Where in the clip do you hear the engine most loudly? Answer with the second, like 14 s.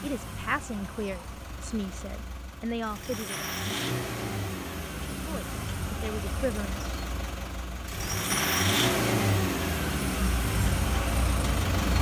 9 s.